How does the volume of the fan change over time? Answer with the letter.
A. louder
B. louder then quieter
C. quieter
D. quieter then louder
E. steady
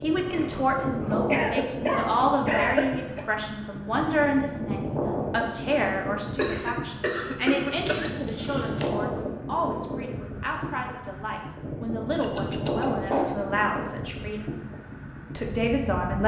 E.